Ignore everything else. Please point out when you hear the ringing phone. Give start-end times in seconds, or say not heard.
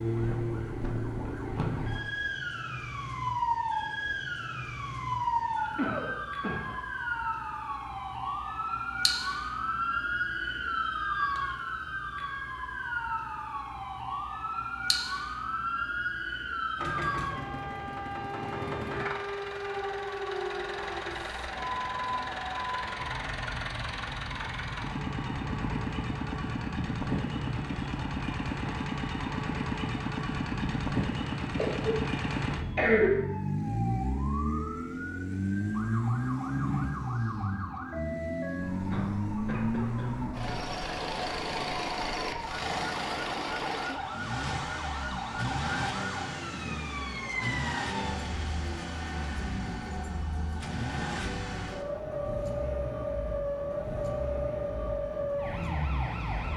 not heard.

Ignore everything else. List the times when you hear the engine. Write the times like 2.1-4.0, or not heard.
16.8-56.5.